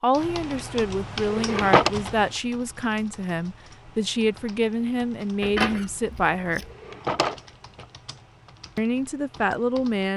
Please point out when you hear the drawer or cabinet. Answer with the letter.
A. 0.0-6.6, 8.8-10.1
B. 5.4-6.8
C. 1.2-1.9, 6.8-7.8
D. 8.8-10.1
C.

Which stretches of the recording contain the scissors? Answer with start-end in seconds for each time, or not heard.
5.4-6.8.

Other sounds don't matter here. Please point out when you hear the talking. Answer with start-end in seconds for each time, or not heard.
0.0-6.6, 8.8-10.1.